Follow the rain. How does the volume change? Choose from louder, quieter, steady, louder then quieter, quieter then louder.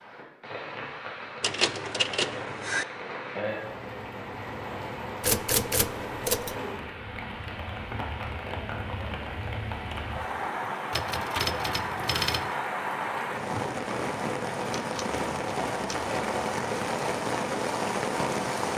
louder.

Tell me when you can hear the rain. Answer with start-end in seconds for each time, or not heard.
0.0-18.7.